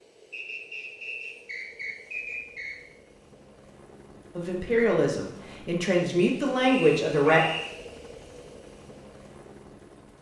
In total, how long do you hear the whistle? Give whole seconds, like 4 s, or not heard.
4 s.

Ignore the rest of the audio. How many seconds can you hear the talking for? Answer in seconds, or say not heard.
3 s.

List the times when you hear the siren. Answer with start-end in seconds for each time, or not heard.
not heard.